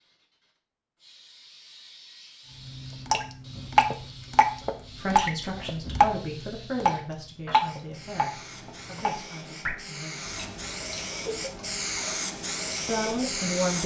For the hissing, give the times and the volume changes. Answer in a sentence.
You can hear the hissing from 0.0 to 13.8 s, getting louder.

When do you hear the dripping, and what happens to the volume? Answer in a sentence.
The dripping can be heard from 2.6 to 13.8 s, getting quieter.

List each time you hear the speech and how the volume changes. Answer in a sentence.
The speech can be heard from 5.0 to 10.3 s, getting quieter; and briefly from 12.8 to 13.8 s.